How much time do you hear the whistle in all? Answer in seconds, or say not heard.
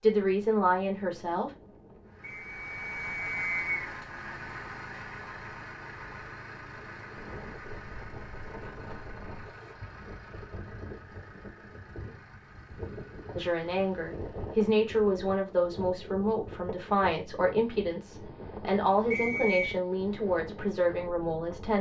2 s.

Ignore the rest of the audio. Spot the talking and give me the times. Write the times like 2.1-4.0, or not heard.
0.0-1.5, 13.3-21.7.